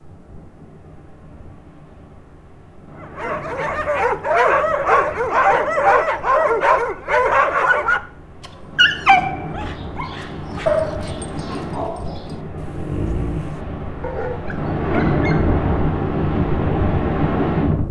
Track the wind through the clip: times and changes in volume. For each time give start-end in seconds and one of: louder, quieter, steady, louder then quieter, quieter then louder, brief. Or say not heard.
0.0-17.8 louder.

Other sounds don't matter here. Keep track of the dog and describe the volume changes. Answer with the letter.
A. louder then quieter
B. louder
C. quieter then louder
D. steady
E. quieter
E.